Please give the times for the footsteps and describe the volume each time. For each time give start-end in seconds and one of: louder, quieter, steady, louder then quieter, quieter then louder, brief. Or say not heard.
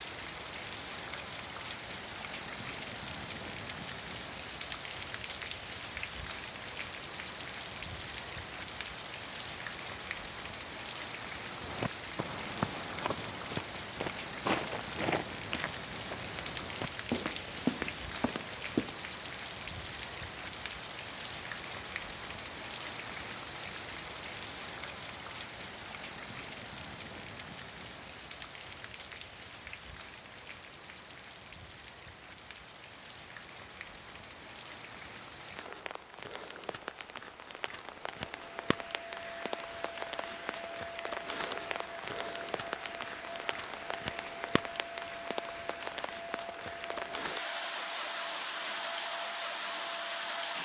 11.5-19.0 steady.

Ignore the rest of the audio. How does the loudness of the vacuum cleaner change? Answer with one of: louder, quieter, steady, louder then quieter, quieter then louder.
steady.